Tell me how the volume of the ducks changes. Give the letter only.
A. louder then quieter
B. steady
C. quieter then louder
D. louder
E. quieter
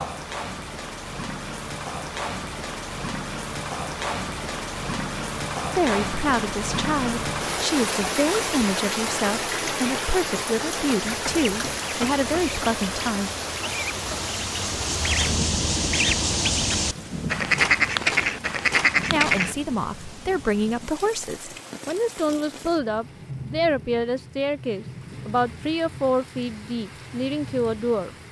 D.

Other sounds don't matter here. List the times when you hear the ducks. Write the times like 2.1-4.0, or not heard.
11.0-19.6.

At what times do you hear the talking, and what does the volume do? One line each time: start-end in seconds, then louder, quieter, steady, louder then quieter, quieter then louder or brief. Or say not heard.
5.8-13.3 steady
19.1-28.1 steady.